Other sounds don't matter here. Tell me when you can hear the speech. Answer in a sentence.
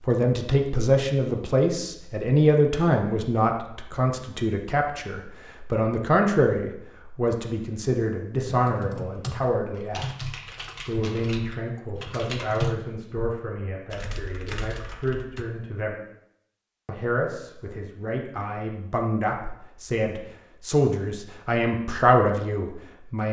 You can hear the speech from 0.0 to 10.1 s, from 10.8 to 16.0 s and from 16.9 to 23.2 s.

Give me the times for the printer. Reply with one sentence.
The printer can't be heard in this clip.